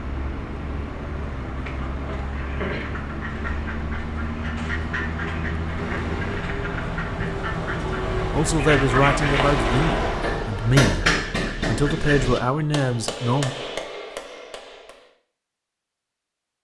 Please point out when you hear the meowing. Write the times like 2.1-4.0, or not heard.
5.8-6.5.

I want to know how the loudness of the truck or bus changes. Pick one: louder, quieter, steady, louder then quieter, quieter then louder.
louder.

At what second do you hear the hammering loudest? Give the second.
11 s.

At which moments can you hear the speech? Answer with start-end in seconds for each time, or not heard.
8.3-13.6.